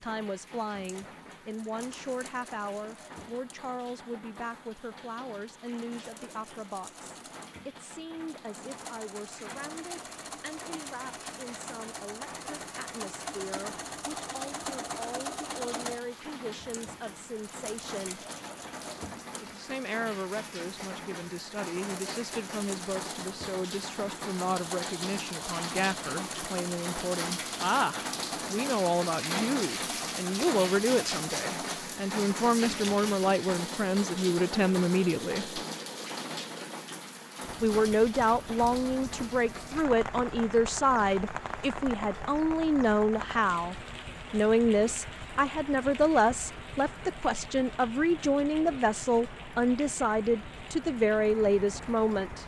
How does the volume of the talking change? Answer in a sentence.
The loudness of the talking goes up.